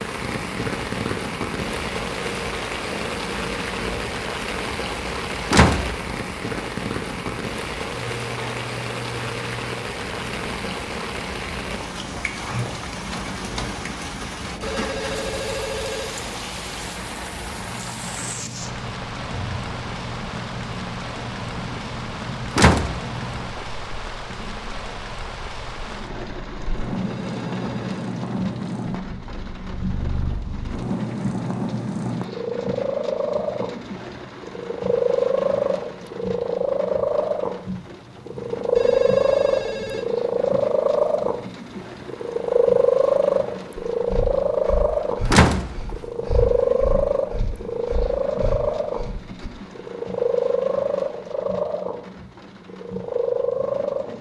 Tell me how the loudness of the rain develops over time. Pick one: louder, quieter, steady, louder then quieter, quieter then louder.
quieter.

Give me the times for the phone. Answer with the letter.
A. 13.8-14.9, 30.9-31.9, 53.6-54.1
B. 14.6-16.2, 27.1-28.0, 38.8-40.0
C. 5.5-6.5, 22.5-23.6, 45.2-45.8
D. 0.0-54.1
B.